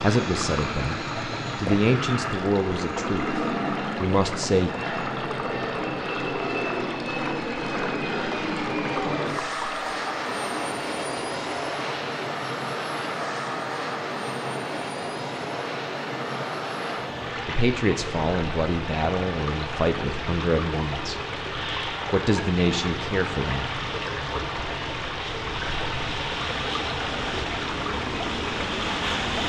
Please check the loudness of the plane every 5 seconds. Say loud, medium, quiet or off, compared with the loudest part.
loud, loud, loud, medium, medium, loud.